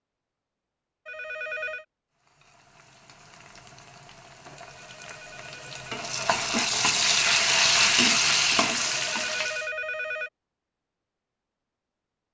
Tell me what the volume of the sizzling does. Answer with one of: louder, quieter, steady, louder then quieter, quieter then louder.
louder.